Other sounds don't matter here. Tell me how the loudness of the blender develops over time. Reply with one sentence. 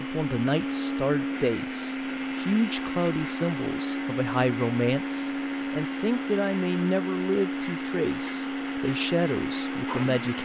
The loudness of the blender stays about the same.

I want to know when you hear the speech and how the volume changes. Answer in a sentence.
The speech can be heard from 0.0 to 10.4 s, at a steady volume.